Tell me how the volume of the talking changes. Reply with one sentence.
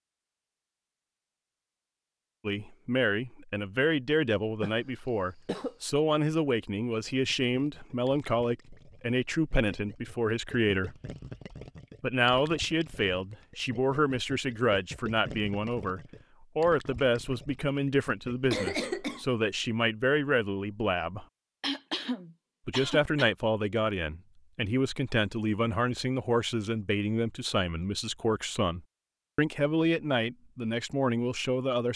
The volume of the talking stays about the same.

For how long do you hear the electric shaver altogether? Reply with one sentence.
You can't hear the electric shaver here.